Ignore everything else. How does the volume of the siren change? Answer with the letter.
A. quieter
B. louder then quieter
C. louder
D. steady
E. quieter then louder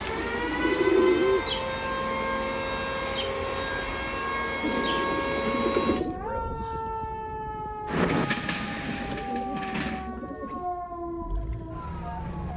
A.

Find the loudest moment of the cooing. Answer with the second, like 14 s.
1 s.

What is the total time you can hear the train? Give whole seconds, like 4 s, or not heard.
2 s.